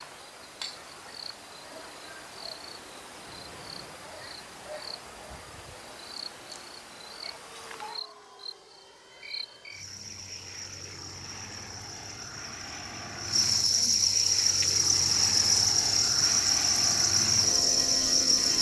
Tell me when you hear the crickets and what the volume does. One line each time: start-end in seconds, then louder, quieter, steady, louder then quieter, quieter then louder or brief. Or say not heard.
0.0-18.5 louder.